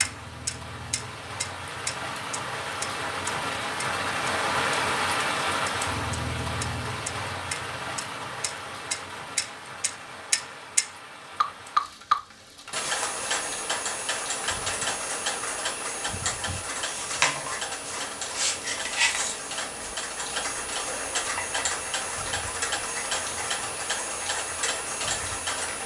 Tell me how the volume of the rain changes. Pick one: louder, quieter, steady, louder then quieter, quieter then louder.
quieter.